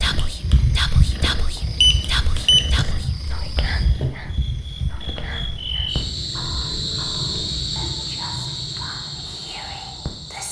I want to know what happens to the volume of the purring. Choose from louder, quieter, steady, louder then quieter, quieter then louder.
quieter.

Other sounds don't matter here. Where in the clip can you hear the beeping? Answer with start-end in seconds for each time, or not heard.
1.8-2.9.